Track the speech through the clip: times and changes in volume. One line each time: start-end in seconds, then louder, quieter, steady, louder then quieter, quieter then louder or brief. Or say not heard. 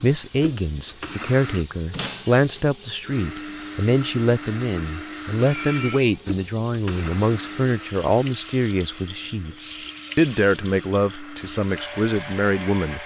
0.0-13.0 steady.